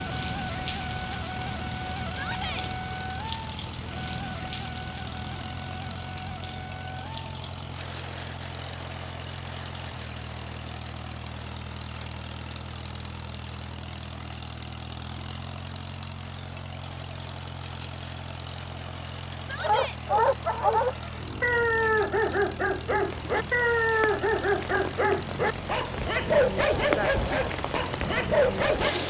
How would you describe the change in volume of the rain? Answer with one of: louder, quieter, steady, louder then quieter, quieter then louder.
quieter then louder.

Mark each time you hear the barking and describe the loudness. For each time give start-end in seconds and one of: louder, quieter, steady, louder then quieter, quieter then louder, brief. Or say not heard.
19.6-28.9 steady.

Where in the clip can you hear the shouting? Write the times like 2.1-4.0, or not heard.
2.1-2.6, 19.4-20.0.